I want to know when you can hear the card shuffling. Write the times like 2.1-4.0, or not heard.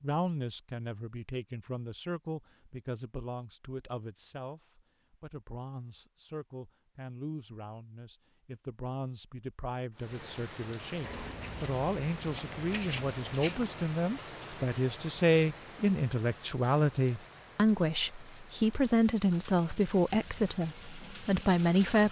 11.0-13.8.